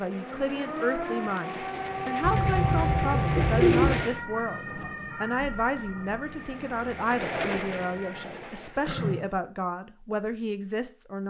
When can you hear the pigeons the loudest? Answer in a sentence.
The volume of the pigeons peaks at 4 seconds.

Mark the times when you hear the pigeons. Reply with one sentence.
You can hear the pigeons from 2.2 to 4.1 s and from 8.2 to 9.3 s.